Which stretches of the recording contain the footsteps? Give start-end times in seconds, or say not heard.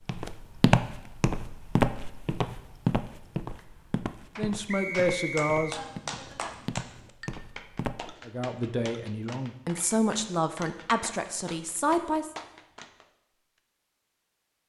0.1-8.2.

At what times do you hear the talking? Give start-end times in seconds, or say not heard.
4.3-6.2, 8.2-12.3.